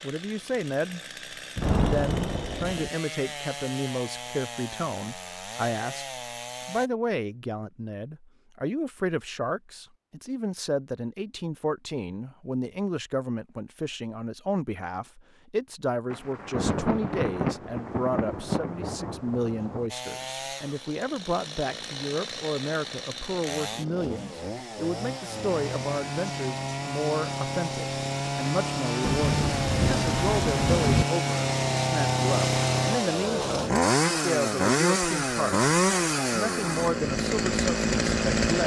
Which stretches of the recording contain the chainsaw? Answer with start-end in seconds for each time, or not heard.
0.0-6.9, 19.9-38.6.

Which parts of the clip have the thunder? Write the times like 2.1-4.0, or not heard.
1.6-2.9, 16.1-19.9, 29.0-31.1.